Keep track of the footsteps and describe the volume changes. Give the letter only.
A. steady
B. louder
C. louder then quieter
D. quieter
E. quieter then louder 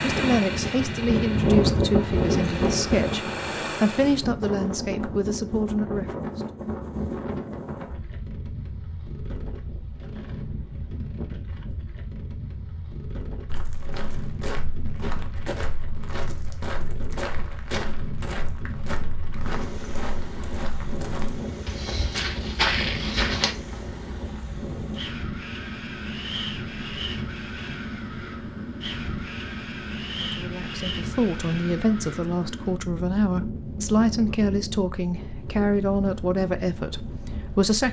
B.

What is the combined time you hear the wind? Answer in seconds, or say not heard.
38 s.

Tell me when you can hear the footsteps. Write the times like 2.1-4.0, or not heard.
13.4-23.6.